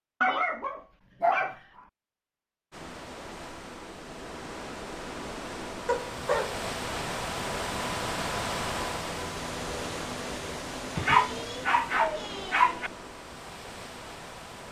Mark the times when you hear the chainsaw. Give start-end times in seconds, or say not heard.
not heard.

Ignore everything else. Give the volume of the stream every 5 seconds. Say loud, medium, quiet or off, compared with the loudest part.
medium, loud, medium.